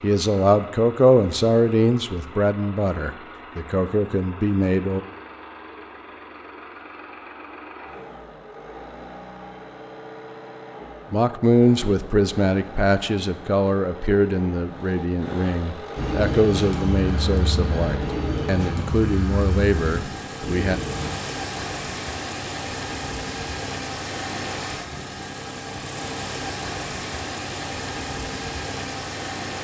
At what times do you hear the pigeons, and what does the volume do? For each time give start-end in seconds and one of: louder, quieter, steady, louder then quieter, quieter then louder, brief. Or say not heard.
15.9-21.1 steady.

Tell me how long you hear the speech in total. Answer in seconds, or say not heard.
15 s.